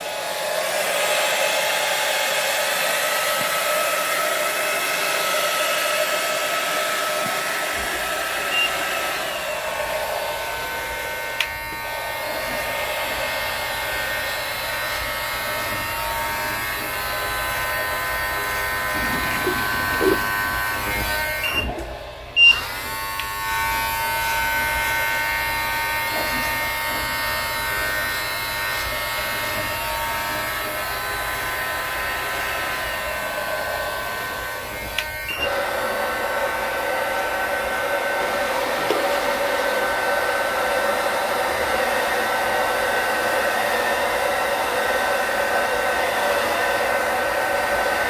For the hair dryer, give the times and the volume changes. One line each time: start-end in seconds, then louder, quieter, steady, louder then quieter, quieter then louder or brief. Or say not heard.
0.0-48.0 quieter then louder.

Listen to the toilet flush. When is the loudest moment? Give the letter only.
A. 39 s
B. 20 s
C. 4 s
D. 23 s
B.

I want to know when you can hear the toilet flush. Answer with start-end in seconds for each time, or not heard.
18.9-20.3, 38.2-39.9.